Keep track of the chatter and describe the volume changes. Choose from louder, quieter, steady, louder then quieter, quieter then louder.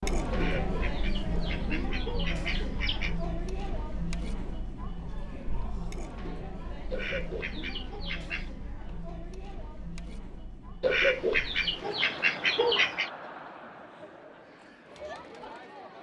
quieter.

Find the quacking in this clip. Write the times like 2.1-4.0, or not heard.
0.3-3.2, 6.9-8.5, 10.8-13.1.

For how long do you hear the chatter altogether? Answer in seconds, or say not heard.
16 s.